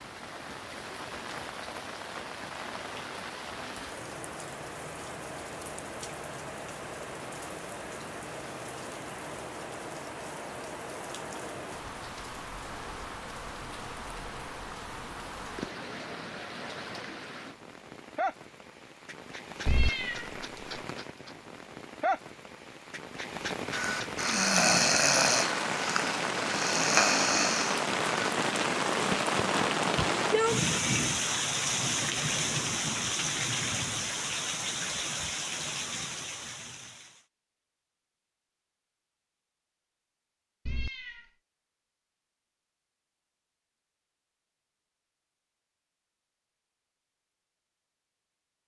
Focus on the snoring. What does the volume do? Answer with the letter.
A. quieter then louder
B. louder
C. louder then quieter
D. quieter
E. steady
A.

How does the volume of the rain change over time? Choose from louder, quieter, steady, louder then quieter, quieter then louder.
louder.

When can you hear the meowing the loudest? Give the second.
20 s.